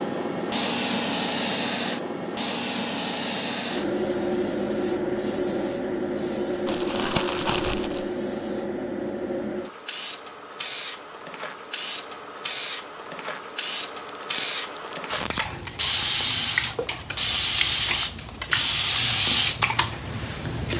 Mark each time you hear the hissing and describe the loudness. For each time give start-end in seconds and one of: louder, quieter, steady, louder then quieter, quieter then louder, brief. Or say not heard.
0.0-20.7 quieter then louder.